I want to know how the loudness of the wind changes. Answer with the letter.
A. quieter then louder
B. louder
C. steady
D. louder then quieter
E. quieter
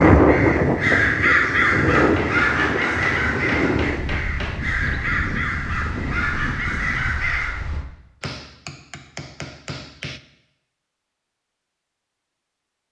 E.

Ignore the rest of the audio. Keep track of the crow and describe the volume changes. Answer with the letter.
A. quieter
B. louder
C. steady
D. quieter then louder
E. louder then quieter
A.